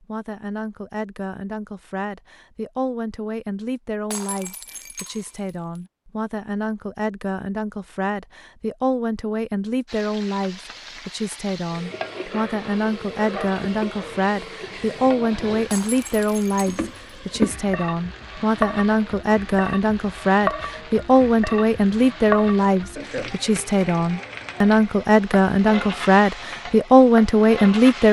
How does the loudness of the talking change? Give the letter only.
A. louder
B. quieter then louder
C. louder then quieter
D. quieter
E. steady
A.